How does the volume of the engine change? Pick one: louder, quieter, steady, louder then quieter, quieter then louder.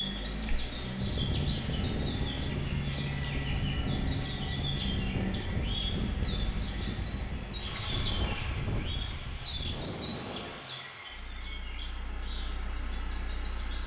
quieter.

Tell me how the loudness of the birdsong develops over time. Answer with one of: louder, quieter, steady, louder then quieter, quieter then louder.
quieter.